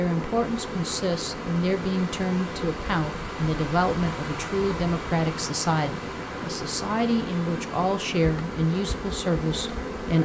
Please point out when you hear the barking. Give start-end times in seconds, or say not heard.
not heard.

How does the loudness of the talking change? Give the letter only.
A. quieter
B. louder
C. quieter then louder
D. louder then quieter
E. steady
E.